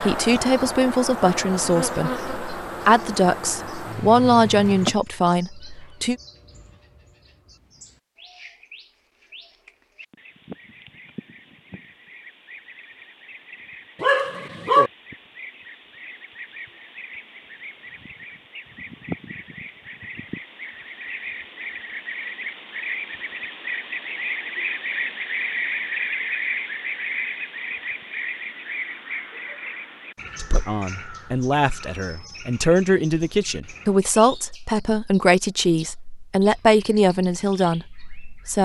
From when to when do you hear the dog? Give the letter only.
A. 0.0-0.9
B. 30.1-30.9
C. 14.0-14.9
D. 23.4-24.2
C.